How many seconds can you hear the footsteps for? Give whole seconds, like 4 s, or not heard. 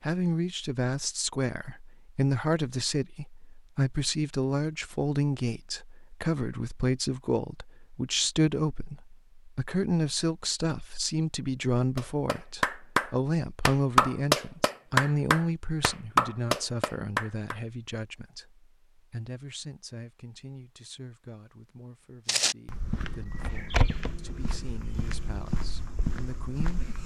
5 s.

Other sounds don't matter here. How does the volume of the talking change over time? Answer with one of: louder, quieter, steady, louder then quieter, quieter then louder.
quieter.